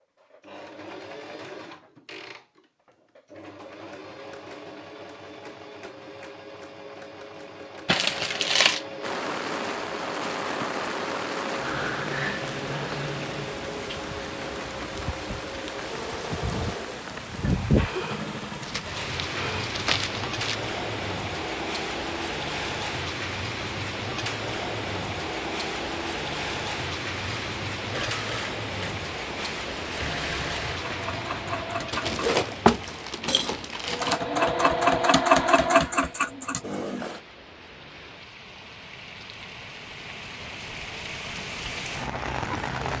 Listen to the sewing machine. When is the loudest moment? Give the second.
35 s.